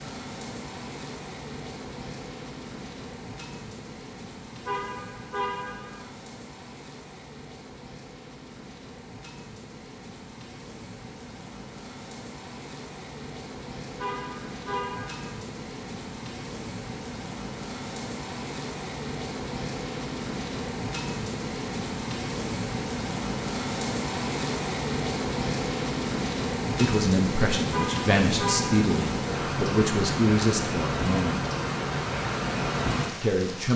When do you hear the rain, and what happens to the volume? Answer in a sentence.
You can hear the rain from 0.0 to 33.7 s, getting louder.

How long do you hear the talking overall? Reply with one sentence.
The talking can be heard for 5 seconds in total.